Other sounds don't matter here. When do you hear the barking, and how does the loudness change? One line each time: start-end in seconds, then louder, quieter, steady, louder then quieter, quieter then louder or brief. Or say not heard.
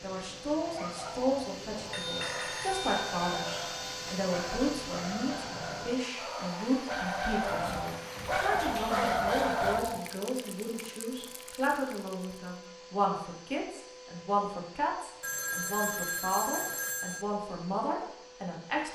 0.6-9.8 louder.